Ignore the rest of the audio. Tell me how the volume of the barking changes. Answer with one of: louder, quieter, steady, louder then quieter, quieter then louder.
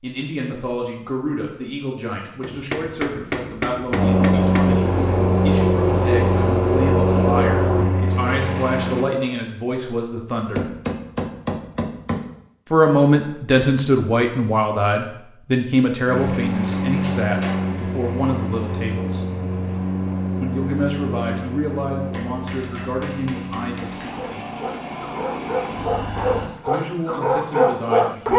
louder.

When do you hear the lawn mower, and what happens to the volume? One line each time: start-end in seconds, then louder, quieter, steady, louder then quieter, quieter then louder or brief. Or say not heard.
3.9-9.1 quieter
16.1-26.5 quieter.